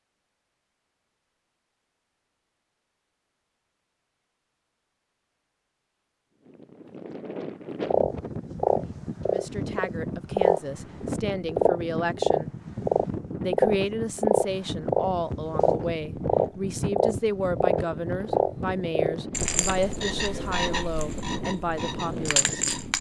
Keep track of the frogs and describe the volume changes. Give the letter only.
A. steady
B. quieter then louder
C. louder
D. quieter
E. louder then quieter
D.